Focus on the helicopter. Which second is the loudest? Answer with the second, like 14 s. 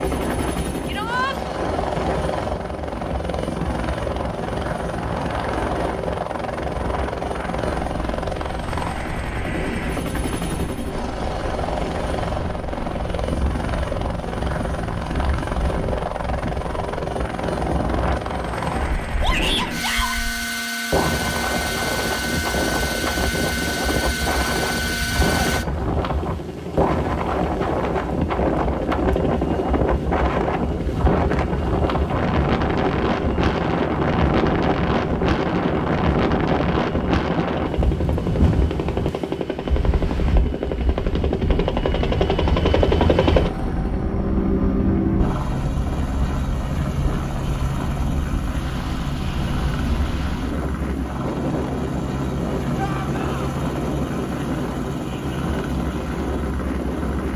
43 s.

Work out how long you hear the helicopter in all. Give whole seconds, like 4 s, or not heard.
57 s.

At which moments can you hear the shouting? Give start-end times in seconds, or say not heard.
0.8-1.4, 19.2-20.2, 52.8-53.5.